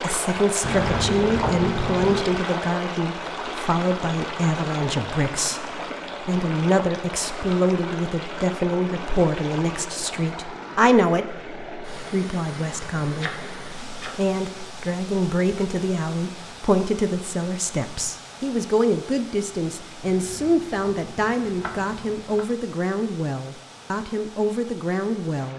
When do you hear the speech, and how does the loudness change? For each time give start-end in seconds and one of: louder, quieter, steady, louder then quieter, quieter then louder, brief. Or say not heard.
0.0-25.5 steady.